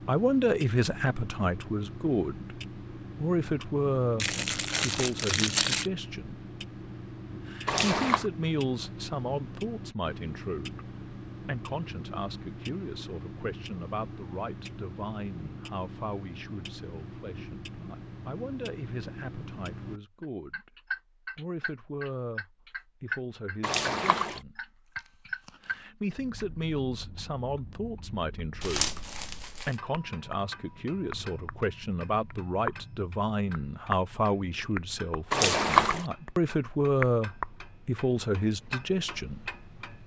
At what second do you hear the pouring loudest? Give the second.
36 s.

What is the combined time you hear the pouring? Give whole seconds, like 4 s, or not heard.
2 s.